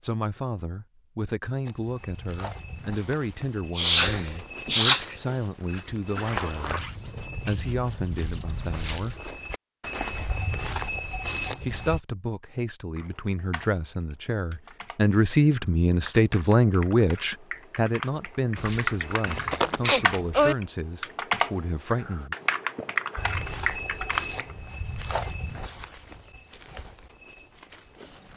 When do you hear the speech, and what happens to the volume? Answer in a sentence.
The speech can be heard from 0.0 to 9.2 s, at a steady volume; and from 11.6 to 22.4 s, getting louder then quieter.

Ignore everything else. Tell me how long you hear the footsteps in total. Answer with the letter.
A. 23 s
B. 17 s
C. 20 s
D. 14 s
B.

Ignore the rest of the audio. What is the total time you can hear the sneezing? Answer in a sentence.
You can hear the sneezing for 3 seconds altogether.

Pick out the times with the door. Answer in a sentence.
You can't hear the door here.